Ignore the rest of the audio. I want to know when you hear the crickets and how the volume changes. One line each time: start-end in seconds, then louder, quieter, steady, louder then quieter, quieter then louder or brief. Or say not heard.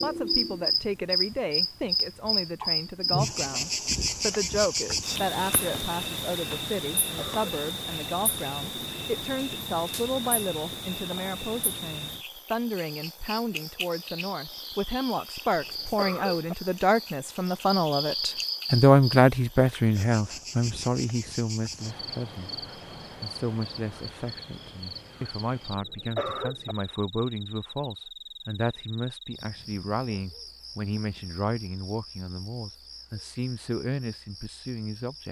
0.0-35.2 quieter.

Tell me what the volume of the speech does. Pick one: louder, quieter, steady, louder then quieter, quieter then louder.
louder then quieter.